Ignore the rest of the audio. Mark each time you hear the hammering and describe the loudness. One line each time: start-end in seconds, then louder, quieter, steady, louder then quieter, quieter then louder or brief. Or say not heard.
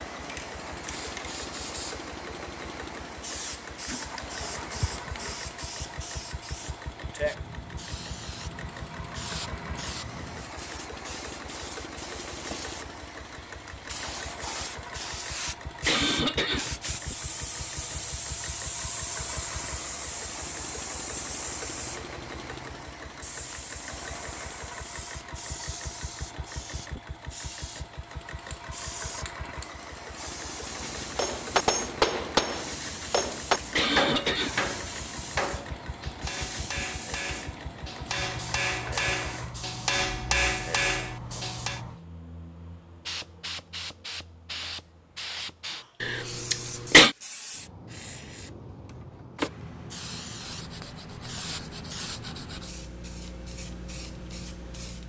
31.1-41.8 quieter then louder.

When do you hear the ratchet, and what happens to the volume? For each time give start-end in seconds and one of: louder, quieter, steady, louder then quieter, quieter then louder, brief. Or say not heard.
not heard.